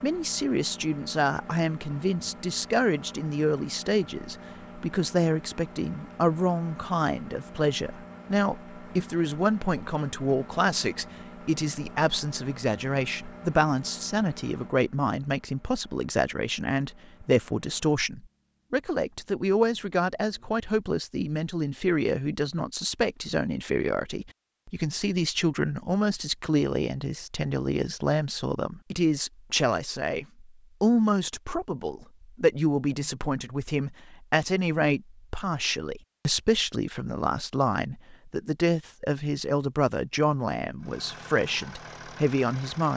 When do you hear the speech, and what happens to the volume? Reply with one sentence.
The speech can be heard from 0.0 to 42.9 s, at a steady volume.